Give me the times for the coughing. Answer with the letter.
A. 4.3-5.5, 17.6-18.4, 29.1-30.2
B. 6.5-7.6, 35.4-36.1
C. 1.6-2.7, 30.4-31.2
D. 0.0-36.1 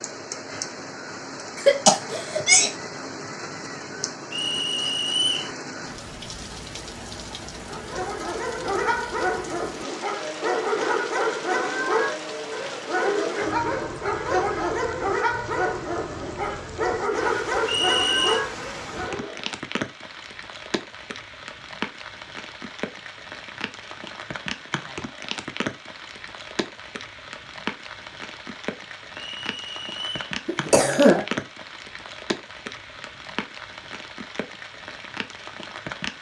C.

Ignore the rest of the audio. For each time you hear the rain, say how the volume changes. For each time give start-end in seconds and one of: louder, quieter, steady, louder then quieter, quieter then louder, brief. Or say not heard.
0.0-36.1 steady.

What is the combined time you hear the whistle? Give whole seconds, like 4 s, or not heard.
3 s.